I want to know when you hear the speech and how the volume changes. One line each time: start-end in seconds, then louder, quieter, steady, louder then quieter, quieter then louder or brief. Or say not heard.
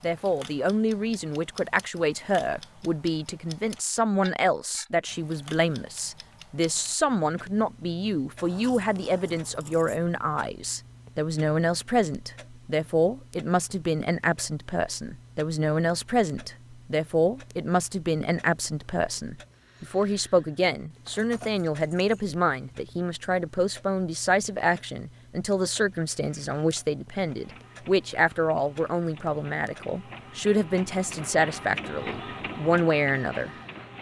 0.0-33.5 steady.